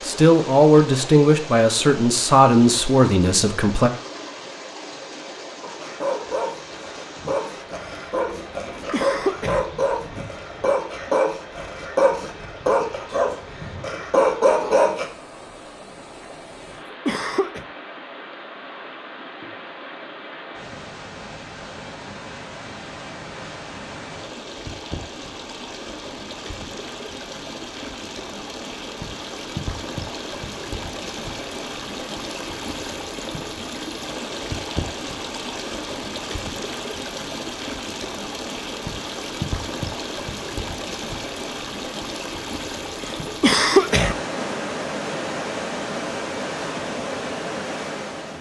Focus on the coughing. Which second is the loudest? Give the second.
44 s.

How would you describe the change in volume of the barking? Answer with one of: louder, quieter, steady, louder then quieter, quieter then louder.
louder.